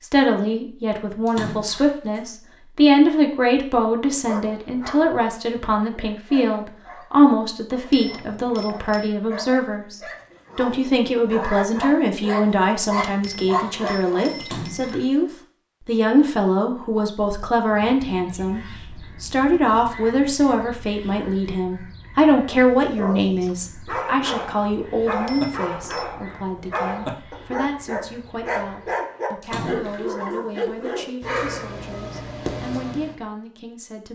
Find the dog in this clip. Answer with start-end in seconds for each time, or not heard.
4.1-14.4, 22.9-33.1.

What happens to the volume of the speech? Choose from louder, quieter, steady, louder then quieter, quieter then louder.
quieter.